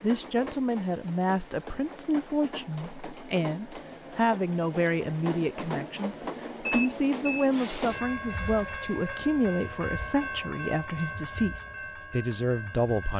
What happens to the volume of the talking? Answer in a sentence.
The loudness of the talking stays about the same.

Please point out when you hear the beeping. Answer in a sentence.
The beeping can be heard from 6.7 to 7.5 s.